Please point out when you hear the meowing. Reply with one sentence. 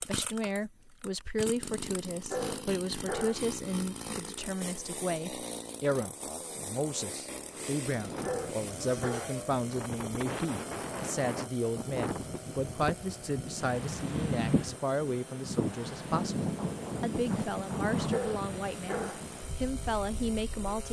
You can't hear the meowing here.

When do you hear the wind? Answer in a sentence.
You can hear the wind from 7.4 to 20.8 s.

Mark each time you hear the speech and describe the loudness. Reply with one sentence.
You can hear the speech from 0.0 to 20.8 s, at a steady volume.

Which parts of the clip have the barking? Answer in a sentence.
You can hear the barking from 2.3 to 3.4 s, from 8.2 to 9.3 s and from 18.1 to 19.2 s.